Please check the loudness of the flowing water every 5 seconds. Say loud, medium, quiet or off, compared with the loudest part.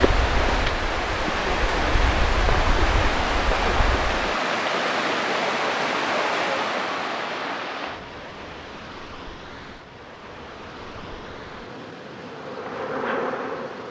loud, loud, quiet.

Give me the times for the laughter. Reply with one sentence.
You can't hear the laughter here.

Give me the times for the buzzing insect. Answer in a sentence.
The buzzing insect can be heard from 0.0 to 4.2 s and from 9.8 to 13.8 s.